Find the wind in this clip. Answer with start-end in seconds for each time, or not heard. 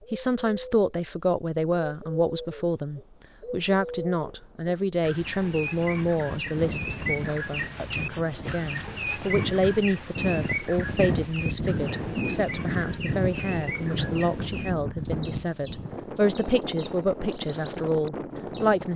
5.8-18.9.